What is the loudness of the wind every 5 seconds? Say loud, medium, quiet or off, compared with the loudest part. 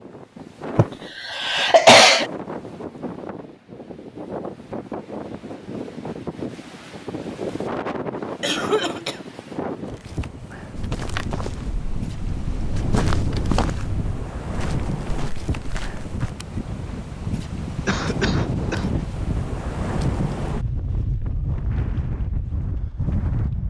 medium, loud, loud, loud, loud.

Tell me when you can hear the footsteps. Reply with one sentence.
You can hear the footsteps from 10.8 to 16.4 s.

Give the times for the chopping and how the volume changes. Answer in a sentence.
The chopping can't be heard in this clip.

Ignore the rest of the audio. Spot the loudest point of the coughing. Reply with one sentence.
The loudest moment of the coughing is at 2 seconds.